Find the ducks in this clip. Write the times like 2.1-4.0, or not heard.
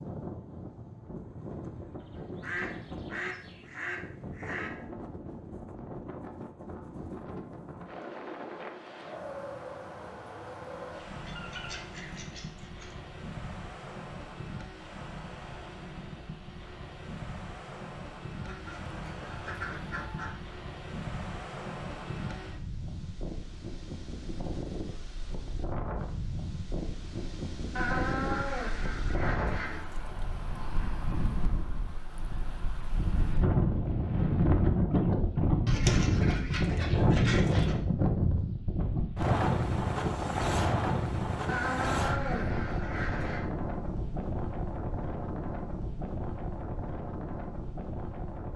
2.0-4.7, 11.2-12.9, 18.4-20.4, 27.8-29.9, 35.6-37.8, 41.5-43.5.